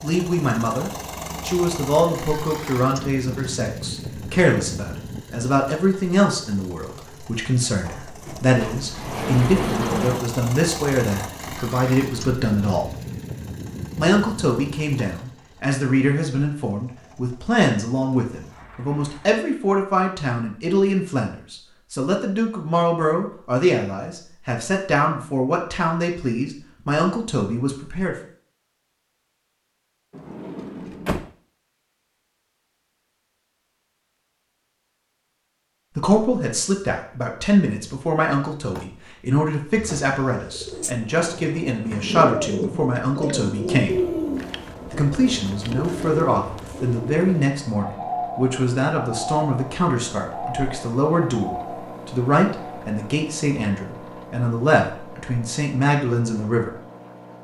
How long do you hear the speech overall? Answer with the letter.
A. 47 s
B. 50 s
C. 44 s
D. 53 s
A.